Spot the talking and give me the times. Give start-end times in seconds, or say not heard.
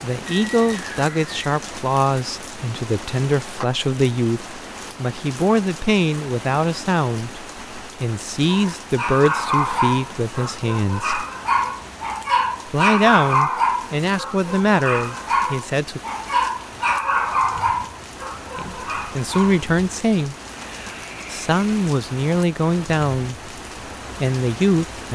0.0-11.2, 12.7-16.0, 18.6-20.4, 21.3-23.5, 24.2-25.1.